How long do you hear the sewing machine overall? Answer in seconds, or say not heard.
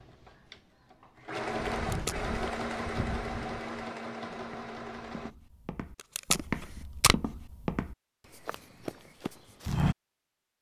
5 s.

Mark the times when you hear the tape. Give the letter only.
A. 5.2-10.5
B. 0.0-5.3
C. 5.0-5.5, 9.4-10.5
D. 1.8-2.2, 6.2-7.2
D.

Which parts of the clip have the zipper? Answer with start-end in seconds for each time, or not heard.
not heard.